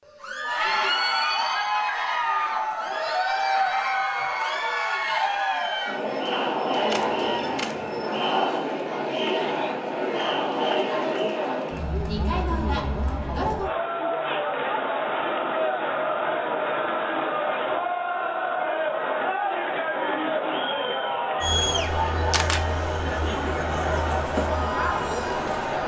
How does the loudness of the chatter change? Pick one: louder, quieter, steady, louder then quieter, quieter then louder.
steady.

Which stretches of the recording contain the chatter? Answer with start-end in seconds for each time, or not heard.
0.1-25.8.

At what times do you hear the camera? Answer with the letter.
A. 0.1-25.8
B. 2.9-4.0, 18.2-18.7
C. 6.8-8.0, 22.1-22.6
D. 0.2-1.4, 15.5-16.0
C.